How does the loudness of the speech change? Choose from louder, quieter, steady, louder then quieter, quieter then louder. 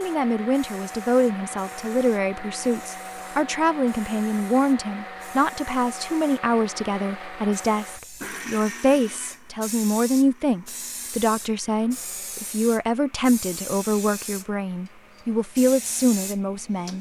steady.